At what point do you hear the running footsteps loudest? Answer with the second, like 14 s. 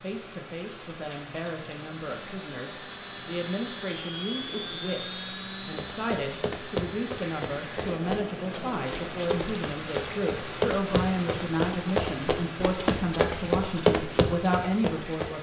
14 s.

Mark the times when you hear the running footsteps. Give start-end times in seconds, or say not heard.
5.7-15.3.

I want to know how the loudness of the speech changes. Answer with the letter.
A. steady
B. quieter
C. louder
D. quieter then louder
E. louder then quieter
C.